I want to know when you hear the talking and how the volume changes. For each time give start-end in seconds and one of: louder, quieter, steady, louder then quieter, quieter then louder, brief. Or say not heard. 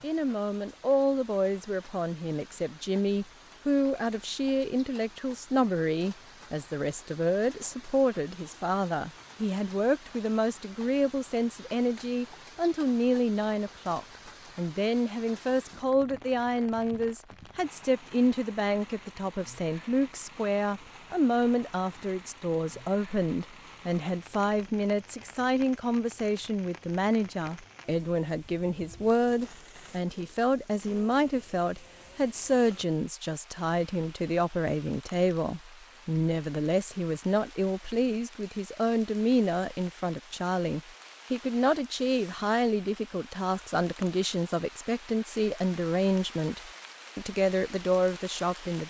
0.0-48.8 steady.